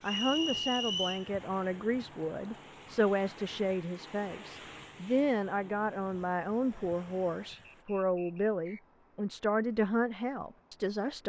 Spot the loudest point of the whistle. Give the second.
1 s.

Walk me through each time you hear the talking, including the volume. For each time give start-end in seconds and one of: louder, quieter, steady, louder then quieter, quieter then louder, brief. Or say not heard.
0.0-11.2 steady.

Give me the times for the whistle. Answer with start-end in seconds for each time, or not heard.
0.0-1.3, 7.7-8.8.